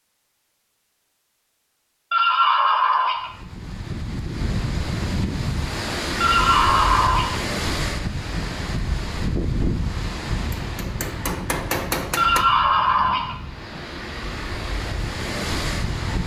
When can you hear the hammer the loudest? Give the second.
12 s.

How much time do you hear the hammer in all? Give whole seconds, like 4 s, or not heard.
2 s.